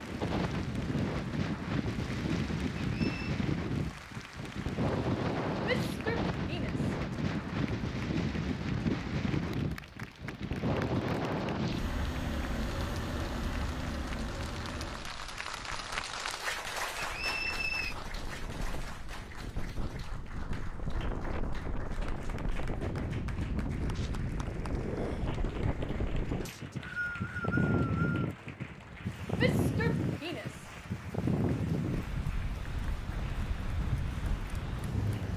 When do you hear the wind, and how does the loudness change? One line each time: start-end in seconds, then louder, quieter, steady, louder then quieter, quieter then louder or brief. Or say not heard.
0.0-35.3 quieter then louder.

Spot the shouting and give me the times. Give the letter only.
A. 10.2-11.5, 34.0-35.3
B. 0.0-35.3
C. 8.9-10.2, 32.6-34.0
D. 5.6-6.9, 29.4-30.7
D.